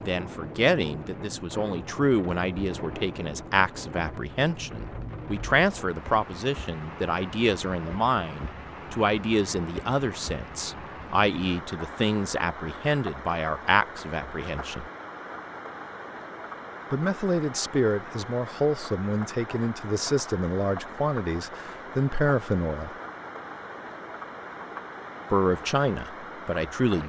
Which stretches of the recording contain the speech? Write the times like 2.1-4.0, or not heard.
0.0-14.8, 16.9-22.9, 25.3-27.0.